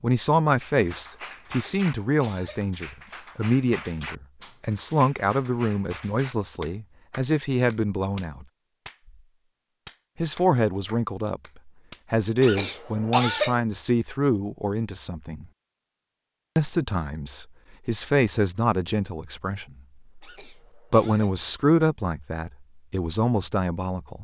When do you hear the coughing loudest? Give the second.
13 s.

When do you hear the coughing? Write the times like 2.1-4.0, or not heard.
1.4-2.7, 12.4-13.6, 20.2-21.4.